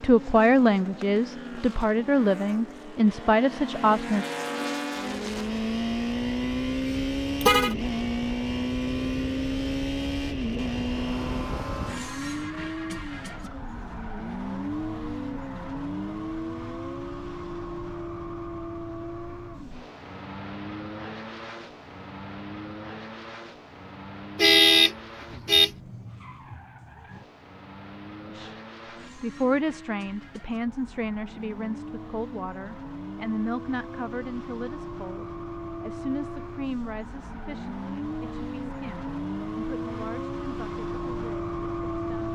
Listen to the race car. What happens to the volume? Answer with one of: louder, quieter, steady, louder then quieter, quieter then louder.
quieter then louder.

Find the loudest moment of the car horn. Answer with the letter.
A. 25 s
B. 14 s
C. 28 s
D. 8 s
A.